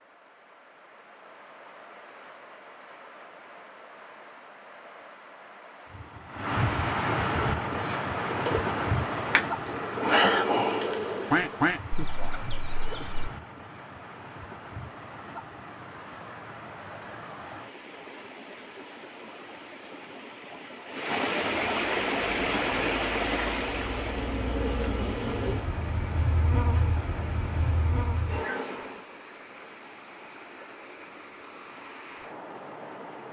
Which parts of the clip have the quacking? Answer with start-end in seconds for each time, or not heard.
11.3-13.3.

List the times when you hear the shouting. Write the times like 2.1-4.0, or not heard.
not heard.